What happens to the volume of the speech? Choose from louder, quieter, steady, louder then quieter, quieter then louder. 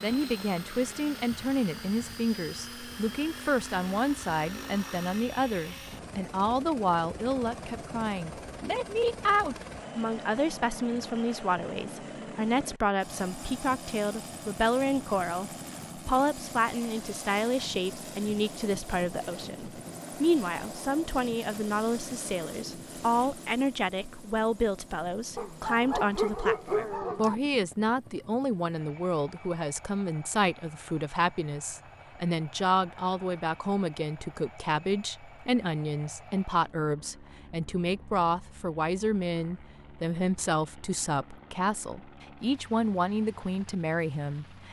steady.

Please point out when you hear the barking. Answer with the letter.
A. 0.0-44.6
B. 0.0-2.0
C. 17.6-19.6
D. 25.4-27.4
D.